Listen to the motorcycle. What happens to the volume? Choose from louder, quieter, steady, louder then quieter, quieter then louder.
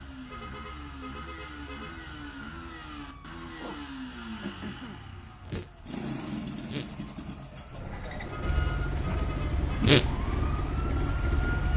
louder.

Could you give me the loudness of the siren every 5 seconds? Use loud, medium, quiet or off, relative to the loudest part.
quiet, loud, medium.